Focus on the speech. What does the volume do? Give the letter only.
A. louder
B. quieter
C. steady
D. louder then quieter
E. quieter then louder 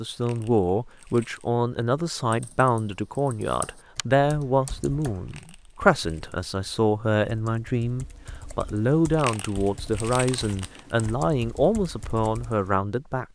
C.